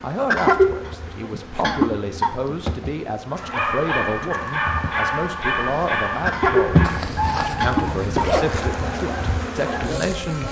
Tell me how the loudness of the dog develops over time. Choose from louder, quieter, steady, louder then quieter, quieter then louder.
quieter.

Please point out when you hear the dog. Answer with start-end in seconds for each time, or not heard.
3.3-9.9.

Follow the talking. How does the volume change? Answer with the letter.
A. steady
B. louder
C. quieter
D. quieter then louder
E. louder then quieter
A.